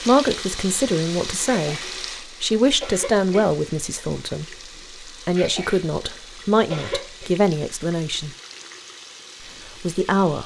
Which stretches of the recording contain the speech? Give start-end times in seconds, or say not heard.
0.1-1.8, 2.4-4.5, 5.2-8.3, 9.8-10.4.